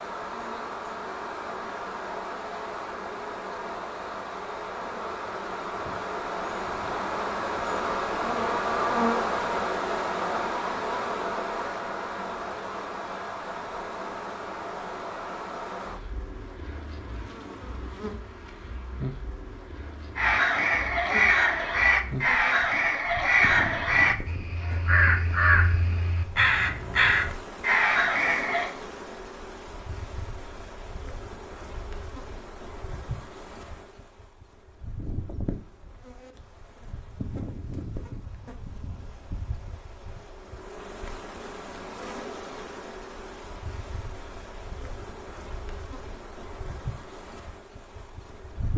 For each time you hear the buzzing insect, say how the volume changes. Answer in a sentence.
You can hear the buzzing insect from 0.0 to 48.7 s, getting quieter.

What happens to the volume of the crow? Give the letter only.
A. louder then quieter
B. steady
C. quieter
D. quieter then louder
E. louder
B.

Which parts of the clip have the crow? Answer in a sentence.
The crow can be heard from 20.1 to 28.7 s.